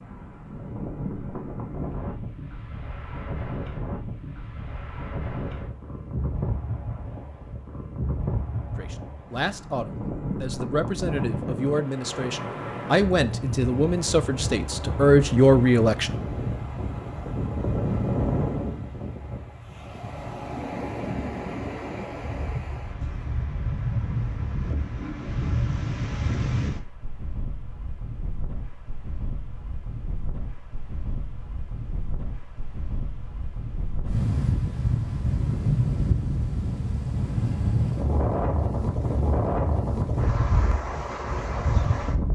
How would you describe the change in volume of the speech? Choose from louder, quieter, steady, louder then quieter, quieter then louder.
louder.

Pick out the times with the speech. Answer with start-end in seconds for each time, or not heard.
8.8-16.1.